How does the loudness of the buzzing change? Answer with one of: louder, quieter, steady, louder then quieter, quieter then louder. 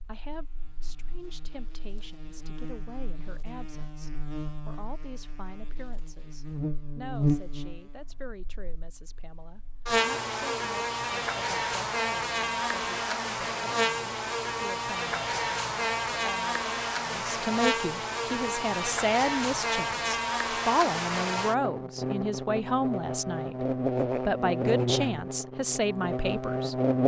louder.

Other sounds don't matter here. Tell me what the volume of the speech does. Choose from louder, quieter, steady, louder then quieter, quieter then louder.
louder.